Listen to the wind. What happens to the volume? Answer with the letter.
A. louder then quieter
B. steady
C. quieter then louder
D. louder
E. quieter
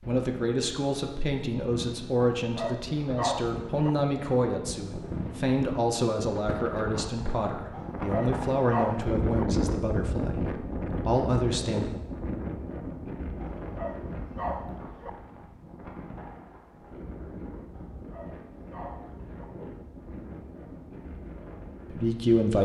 A.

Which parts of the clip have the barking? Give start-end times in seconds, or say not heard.
2.4-3.9, 7.7-9.4, 13.4-15.1, 17.8-19.4.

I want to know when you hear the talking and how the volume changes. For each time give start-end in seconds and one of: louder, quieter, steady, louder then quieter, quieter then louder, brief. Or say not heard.
0.1-11.9 steady
21.9-22.5 brief.